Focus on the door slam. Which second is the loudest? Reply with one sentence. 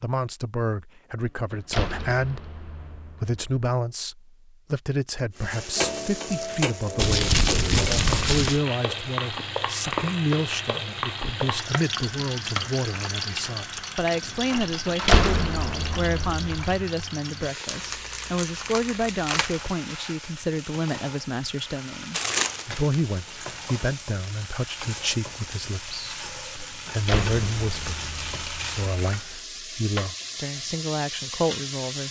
The volume of the door slam peaks at 15 seconds.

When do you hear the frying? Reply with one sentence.
You can hear the frying from 5.3 to 32.0 s.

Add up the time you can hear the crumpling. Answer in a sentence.
You can hear the crumpling for 5 seconds altogether.